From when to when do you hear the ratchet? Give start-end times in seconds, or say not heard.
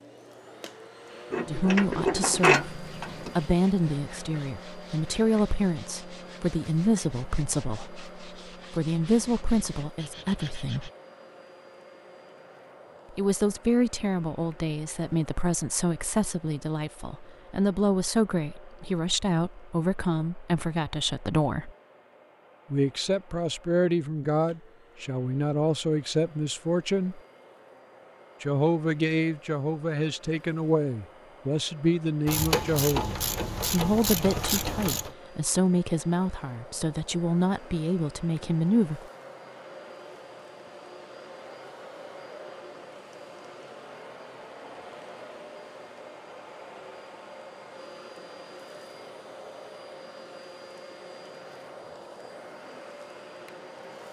1.3-3.4, 32.2-35.1.